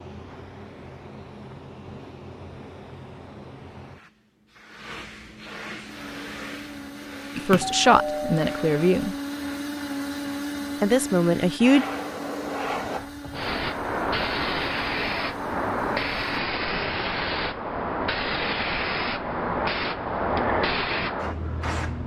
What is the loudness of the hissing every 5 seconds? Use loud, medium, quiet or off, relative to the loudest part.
quiet, quiet, loud, loud, loud.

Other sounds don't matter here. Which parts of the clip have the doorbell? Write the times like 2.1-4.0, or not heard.
7.5-9.1.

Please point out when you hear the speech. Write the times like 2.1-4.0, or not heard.
7.3-9.2, 10.8-11.8.